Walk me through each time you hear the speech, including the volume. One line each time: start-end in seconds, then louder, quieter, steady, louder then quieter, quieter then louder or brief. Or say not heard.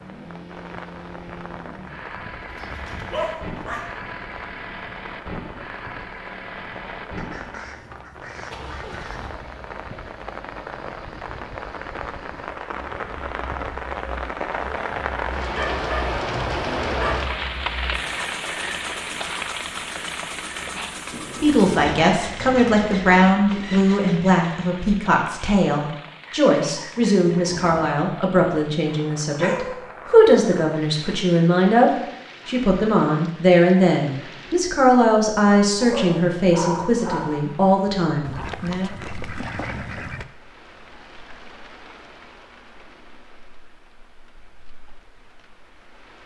21.4-38.9 steady.